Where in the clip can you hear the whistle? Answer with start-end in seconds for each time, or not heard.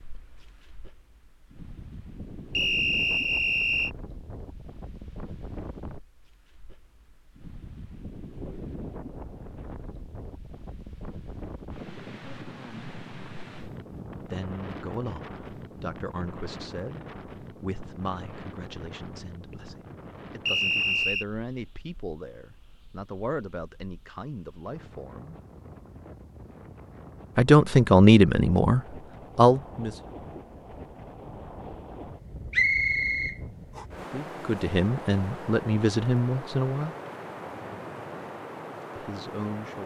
2.5-3.9, 20.4-21.2, 32.5-33.9.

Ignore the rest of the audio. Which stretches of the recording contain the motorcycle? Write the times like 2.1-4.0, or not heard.
not heard.